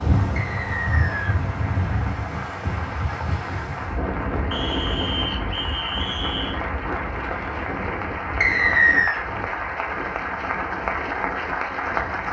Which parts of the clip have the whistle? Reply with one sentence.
The whistle can be heard from 0.3 to 1.4 s, from 4.5 to 6.6 s and from 8.4 to 9.2 s.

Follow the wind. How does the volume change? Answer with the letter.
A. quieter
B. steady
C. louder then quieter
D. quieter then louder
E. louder
A.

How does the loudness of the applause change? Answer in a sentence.
The volume of the applause goes up.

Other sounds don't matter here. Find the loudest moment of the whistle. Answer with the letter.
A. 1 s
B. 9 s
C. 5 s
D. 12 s
B.